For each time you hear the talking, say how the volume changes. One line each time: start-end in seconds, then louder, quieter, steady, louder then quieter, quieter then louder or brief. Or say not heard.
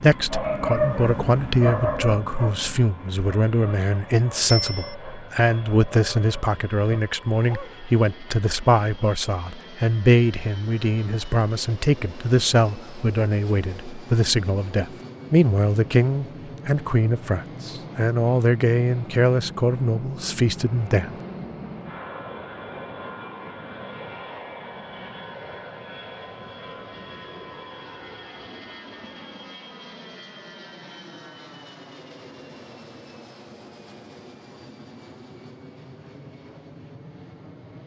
0.0-21.1 steady.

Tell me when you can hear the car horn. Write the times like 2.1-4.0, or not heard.
not heard.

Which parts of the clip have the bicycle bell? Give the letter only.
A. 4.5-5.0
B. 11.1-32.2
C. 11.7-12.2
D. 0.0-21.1
A.